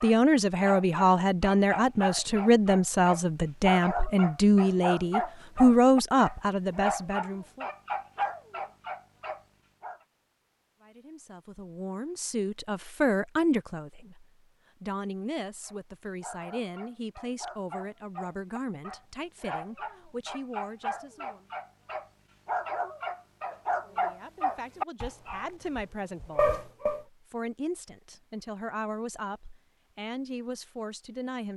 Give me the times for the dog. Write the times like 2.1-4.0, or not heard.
0.0-10.0, 15.6-27.0.